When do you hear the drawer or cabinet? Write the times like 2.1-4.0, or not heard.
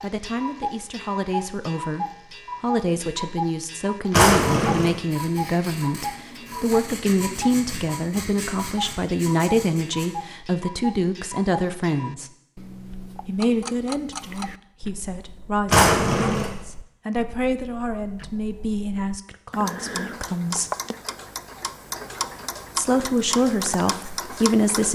4.1-5.0, 15.7-16.5.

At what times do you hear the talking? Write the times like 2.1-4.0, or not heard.
0.0-12.3, 13.2-20.7, 22.8-24.9.